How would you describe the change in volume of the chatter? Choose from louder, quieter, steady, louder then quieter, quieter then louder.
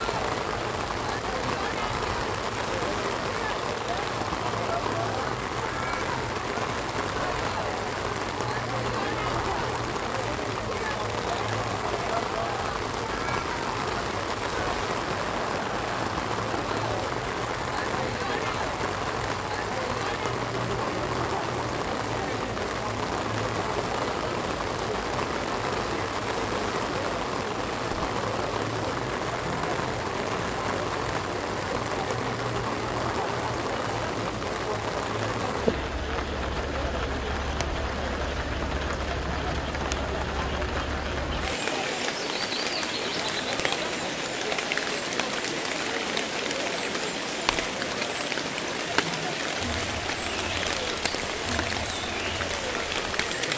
steady.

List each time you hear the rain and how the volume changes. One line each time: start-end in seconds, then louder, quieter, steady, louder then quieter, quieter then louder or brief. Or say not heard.
0.0-53.5 steady.